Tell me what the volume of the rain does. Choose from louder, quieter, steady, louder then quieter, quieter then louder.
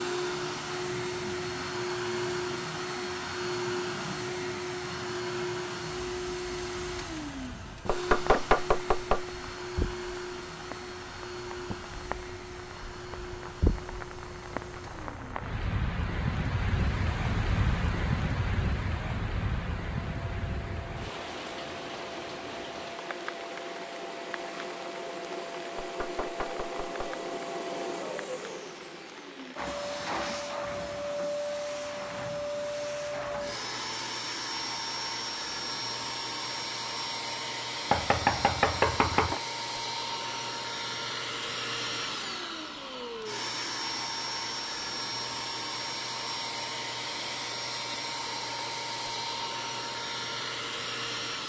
louder then quieter.